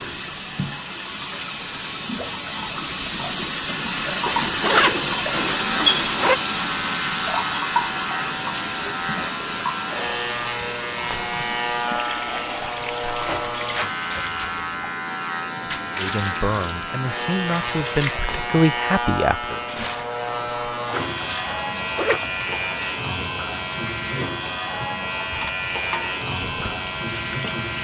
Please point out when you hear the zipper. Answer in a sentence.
The zipper can be heard from 4.2 to 6.4 s and from 21.9 to 22.6 s.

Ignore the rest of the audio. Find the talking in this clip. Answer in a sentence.
You can hear the talking from 15.9 to 19.6 s.